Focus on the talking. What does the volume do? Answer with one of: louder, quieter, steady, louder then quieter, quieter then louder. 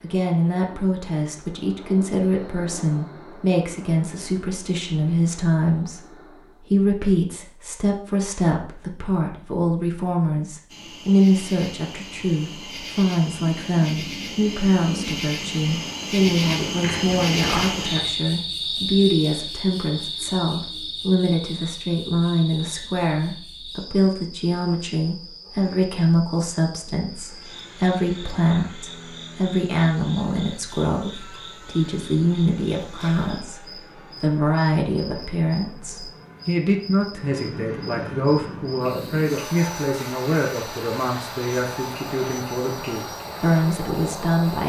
steady.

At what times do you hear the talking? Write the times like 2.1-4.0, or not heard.
0.0-44.6.